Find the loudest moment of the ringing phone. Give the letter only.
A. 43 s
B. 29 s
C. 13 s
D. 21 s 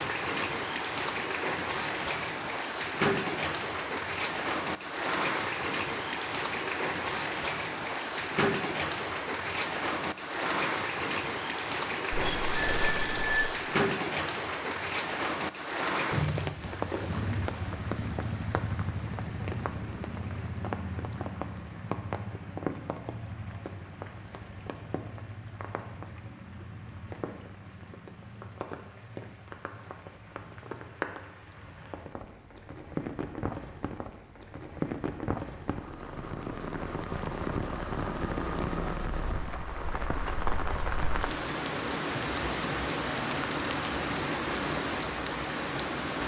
C.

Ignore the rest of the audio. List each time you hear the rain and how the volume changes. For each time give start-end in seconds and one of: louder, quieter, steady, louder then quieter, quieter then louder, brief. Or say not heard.
0.0-46.2 quieter then louder.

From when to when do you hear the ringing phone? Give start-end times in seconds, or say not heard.
12.1-13.6.